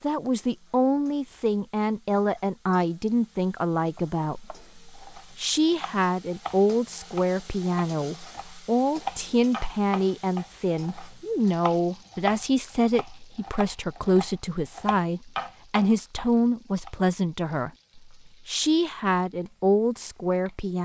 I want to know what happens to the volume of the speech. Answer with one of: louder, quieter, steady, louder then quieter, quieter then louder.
steady.